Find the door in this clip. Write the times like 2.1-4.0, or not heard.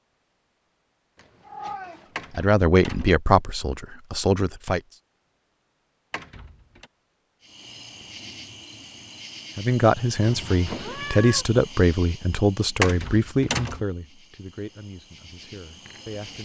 2.1-3.1, 6.1-6.9, 12.8-13.8.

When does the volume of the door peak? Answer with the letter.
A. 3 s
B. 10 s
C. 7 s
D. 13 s
D.